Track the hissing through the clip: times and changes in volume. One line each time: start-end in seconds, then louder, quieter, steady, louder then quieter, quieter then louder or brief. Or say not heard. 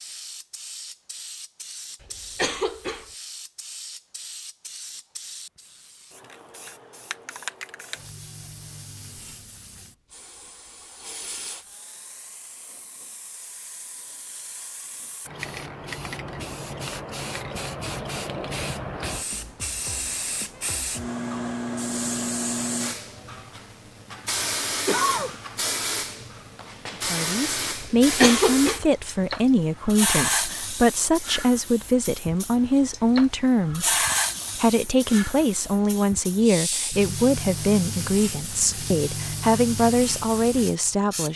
0.0-41.3 louder.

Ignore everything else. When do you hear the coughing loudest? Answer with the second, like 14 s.
28 s.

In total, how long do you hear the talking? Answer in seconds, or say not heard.
14 s.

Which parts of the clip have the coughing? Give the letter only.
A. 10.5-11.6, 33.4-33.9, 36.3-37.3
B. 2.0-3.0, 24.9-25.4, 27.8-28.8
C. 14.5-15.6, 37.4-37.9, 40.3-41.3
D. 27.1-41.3
B.